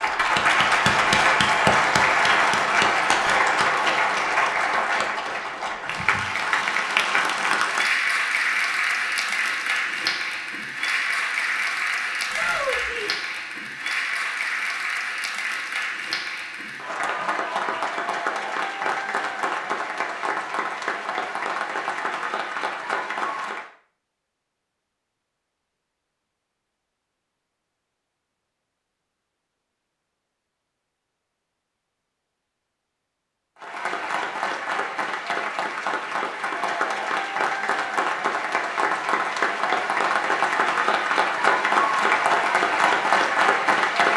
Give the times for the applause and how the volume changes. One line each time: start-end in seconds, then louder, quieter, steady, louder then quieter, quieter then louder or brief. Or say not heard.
0.0-23.7 quieter
33.6-44.1 louder.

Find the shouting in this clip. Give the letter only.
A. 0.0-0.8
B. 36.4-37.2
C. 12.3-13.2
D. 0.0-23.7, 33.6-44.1
C.